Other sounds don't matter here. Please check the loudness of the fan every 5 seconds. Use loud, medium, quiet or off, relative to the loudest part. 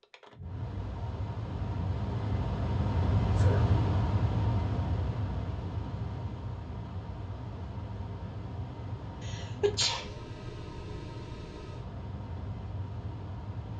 loud, medium, medium.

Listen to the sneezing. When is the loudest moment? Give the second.
10 s.